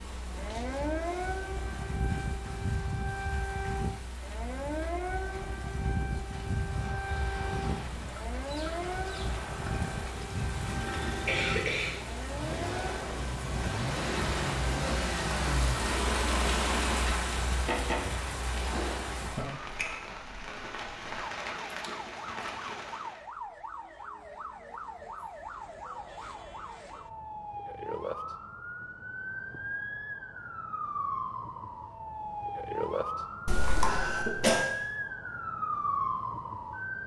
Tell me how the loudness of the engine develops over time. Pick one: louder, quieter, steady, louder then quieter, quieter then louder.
louder.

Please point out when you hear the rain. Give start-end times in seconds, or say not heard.
0.0-23.2.